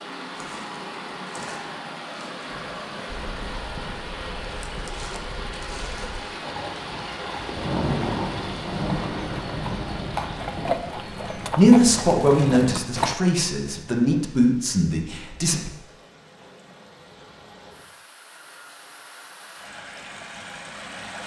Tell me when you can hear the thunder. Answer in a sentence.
You can hear the thunder from 7.5 to 10.8 s.